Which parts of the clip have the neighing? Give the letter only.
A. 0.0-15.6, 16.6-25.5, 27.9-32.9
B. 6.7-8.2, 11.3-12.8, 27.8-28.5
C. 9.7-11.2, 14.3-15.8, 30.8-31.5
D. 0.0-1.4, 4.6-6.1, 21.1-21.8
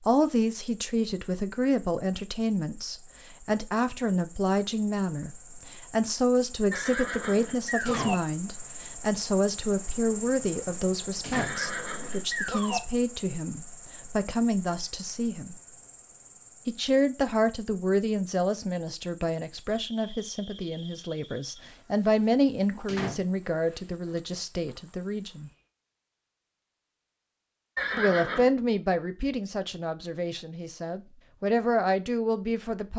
B.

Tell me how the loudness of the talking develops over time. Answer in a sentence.
The volume of the talking stays about the same.